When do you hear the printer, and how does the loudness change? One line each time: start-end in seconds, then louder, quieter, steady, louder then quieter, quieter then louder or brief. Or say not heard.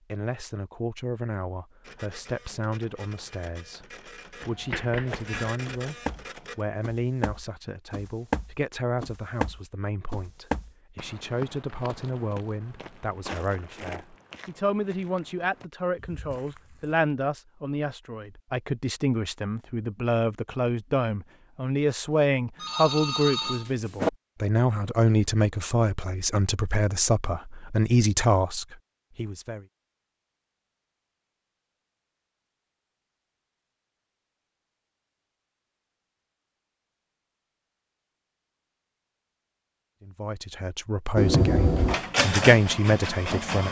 1.8-6.7 louder
41.8-43.6 brief.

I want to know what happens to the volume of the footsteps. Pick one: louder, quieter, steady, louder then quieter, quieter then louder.
louder then quieter.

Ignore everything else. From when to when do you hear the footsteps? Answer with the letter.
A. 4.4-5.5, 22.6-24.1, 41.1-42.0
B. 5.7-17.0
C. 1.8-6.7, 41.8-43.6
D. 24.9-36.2
B.